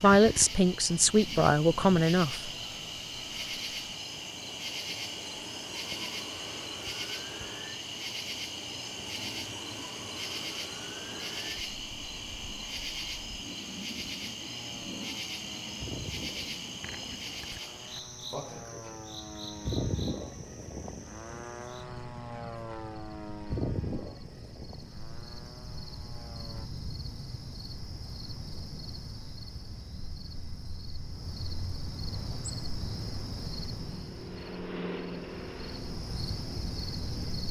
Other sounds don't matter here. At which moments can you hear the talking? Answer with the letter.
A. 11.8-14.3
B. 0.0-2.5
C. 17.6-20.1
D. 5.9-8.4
B.